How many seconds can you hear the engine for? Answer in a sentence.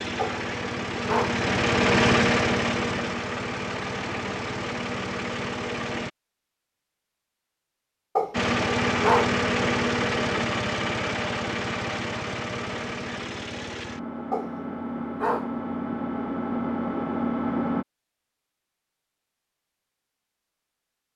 You can hear the engine for 16 seconds altogether.